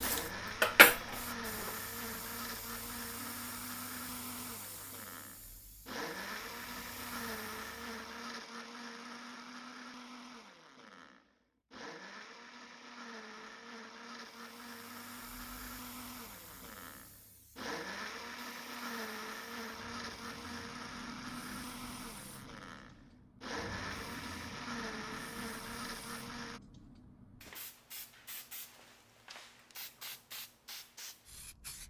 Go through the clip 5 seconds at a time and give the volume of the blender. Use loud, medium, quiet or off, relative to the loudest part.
loud, loud, medium, loud, loud, loud, off.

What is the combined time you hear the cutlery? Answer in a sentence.
The cutlery can be heard for 2 seconds in total.